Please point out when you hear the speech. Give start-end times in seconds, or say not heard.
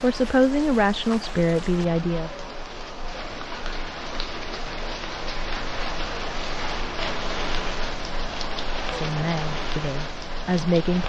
0.0-2.3, 8.9-11.0.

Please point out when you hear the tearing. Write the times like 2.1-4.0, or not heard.
not heard.